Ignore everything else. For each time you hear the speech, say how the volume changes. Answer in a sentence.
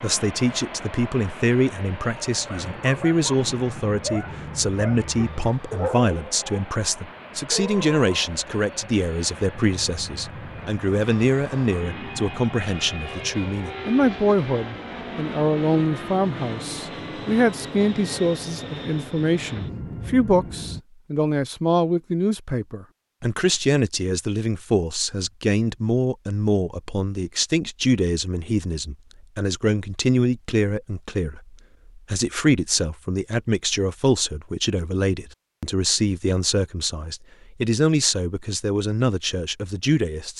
The speech can be heard from 0.0 to 40.3 s, at a steady volume.